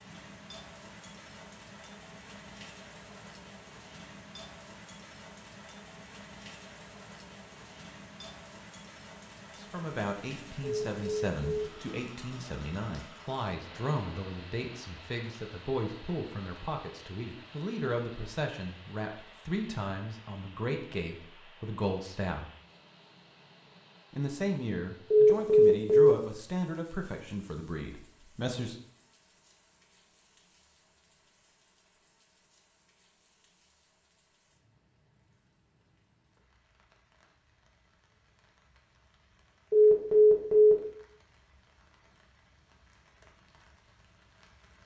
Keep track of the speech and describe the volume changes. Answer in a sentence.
The volume of the speech stays about the same.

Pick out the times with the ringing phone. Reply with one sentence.
The ringing phone can be heard from 10.6 to 11.7 s, from 25.1 to 26.1 s and from 39.7 to 40.8 s.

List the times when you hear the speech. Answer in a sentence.
You can hear the speech from 9.6 to 22.4 s and from 24.1 to 28.8 s.